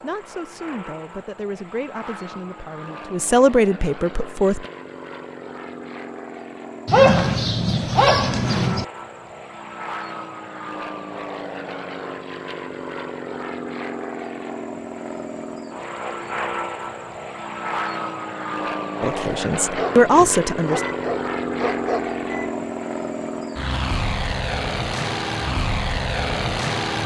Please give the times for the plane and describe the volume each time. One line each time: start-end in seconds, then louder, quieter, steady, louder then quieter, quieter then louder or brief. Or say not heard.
0.0-27.0 louder.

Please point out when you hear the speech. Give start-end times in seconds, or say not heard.
0.0-4.7, 19.0-20.8.